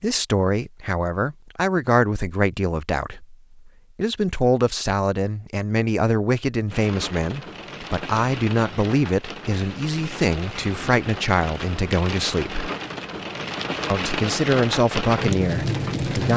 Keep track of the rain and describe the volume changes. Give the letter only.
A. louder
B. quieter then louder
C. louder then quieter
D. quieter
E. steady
A.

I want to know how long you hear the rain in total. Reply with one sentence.
You can hear the rain for 10 seconds altogether.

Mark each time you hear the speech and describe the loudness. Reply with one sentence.
You can hear the speech from 0.0 to 12.7 s, at a steady volume; and briefly from 13.9 to 16.3 s.